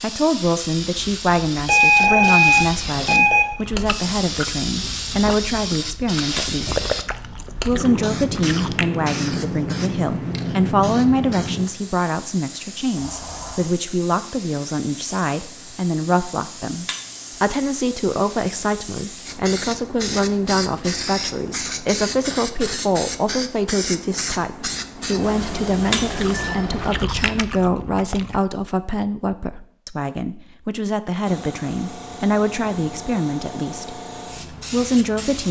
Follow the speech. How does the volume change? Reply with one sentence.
The volume of the speech stays about the same.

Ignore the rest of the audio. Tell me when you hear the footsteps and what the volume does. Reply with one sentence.
You can't hear the footsteps here.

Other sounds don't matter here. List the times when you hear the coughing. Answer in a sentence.
You can't hear the coughing here.